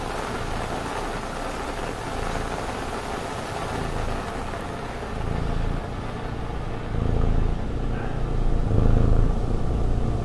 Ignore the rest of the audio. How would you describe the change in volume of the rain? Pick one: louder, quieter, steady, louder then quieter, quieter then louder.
quieter.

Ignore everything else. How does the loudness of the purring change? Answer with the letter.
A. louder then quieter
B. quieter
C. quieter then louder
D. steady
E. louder
E.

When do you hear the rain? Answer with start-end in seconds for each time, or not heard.
0.0-10.2.